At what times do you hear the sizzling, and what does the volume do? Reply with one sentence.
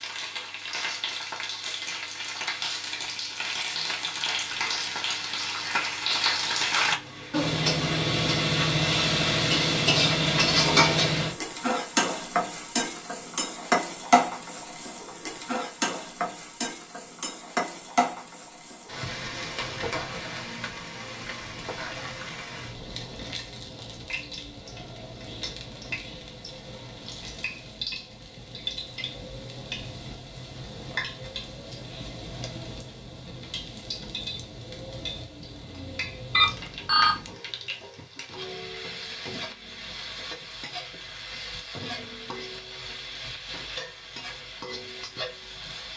The sizzling can be heard from 0.0 to 45.9 s, getting quieter.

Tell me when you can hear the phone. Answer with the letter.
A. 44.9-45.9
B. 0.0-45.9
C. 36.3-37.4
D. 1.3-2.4
C.